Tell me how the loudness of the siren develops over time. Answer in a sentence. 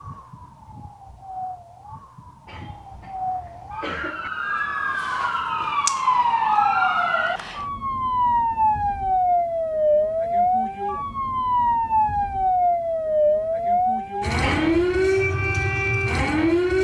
The loudness of the siren goes up.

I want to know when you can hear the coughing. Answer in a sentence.
You can hear the coughing from 2.5 to 4.3 s and from 14.4 to 15.1 s.